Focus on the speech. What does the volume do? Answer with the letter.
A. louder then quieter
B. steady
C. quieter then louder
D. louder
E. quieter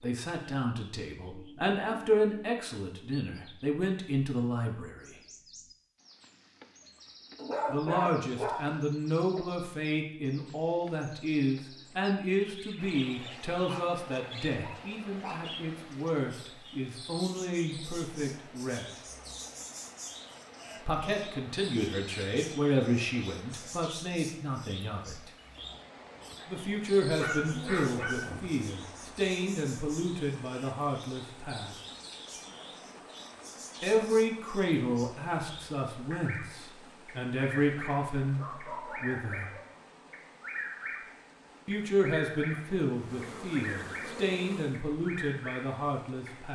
B.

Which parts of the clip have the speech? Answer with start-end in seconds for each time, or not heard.
0.0-5.2, 7.7-18.9, 20.9-25.3, 26.4-31.8, 33.8-39.5, 41.6-46.4.